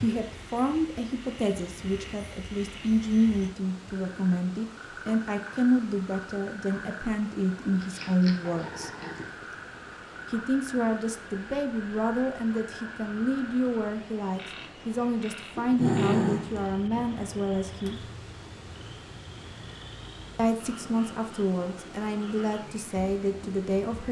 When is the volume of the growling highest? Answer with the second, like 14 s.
16 s.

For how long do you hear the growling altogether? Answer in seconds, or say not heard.
3 s.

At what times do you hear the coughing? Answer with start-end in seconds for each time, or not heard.
not heard.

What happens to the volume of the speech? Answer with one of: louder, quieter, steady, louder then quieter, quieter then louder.
steady.